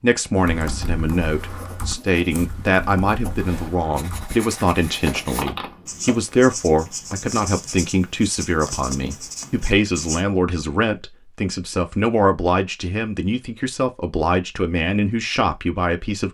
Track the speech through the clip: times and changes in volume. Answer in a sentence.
You can hear the speech from 0.0 to 16.2 s, at a steady volume.